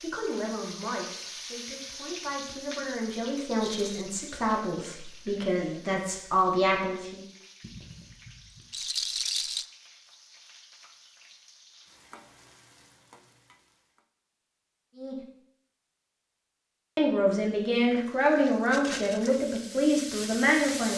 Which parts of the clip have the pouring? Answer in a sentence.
You can hear the pouring from 7.6 to 8.8 s.